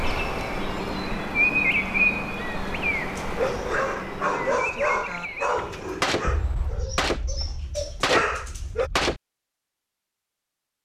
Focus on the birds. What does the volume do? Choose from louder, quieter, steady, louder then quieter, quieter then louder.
quieter.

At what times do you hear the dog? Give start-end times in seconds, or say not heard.
3.1-8.9.